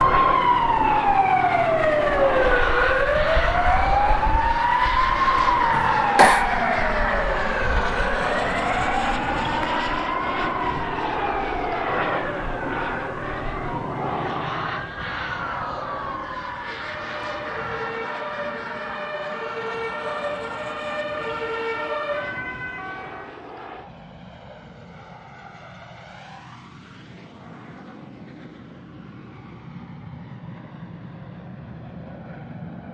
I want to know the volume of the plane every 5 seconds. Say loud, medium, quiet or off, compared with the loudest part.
loud, loud, loud, medium, quiet, quiet, quiet.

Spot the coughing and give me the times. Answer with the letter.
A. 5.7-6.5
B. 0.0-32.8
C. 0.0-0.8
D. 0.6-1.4
A.